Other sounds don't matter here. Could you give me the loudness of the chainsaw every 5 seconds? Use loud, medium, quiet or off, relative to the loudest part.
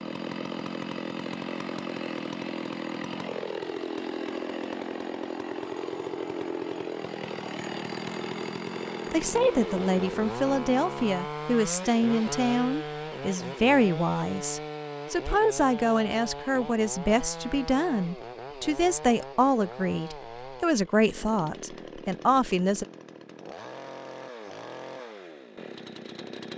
loud, loud, loud, medium, medium, medium.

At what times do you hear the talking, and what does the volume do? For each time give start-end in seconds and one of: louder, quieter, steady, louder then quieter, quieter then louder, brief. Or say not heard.
9.1-22.9 steady.